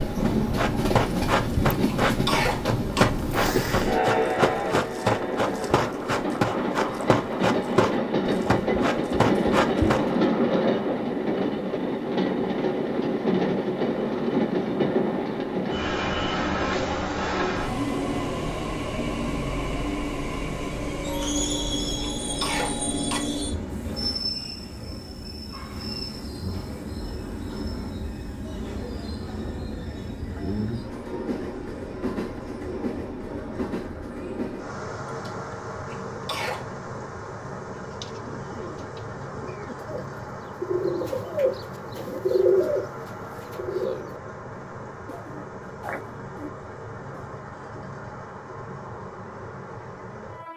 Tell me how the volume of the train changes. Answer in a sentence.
The loudness of the train goes down.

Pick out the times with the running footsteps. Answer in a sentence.
You can hear the running footsteps from 0.2 to 10.1 s.